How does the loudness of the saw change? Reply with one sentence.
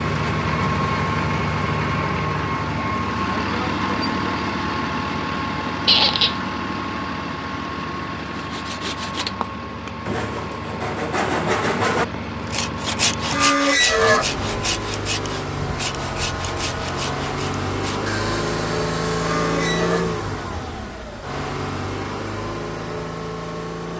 The loudness of the saw goes up, then down.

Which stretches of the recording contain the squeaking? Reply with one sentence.
You can hear the squeaking from 5.8 to 6.3 s, from 13.3 to 14.3 s and from 19.2 to 20.1 s.